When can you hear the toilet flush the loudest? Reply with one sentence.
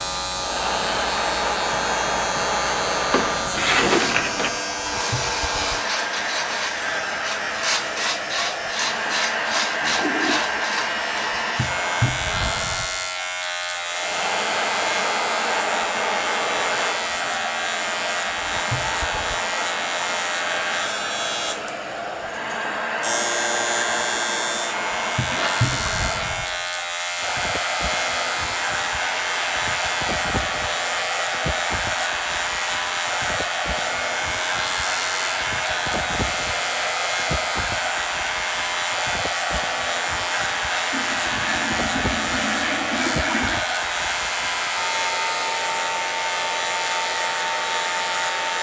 The volume of the toilet flush peaks at 43 seconds.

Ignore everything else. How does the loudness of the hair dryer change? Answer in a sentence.
The volume of the hair dryer stays about the same.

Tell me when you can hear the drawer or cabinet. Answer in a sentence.
You can hear the drawer or cabinet from 3.1 to 4.6 s.